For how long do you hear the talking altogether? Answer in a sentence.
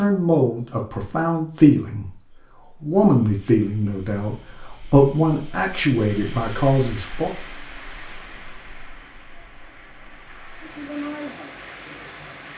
The talking can be heard for 7 seconds in total.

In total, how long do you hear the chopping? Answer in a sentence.
You can't hear the chopping here.